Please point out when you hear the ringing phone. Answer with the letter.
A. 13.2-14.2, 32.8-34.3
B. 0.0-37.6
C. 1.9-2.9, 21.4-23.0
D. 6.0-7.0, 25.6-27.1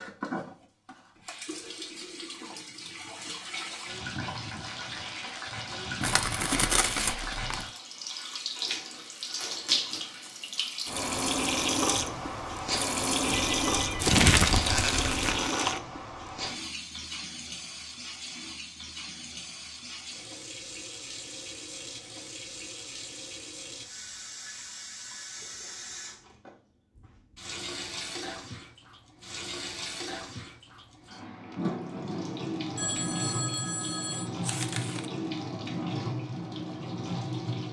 A.